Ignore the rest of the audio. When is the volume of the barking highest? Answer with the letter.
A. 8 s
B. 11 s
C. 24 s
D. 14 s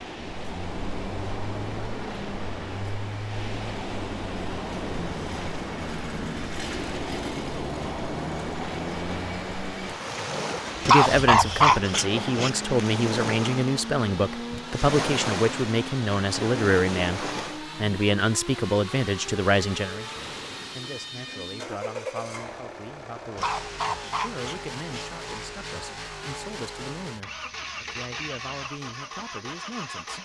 B.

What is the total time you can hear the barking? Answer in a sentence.
You can hear the barking for 3 seconds altogether.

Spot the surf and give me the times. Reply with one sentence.
You can hear the surf from 0.0 to 17.6 s.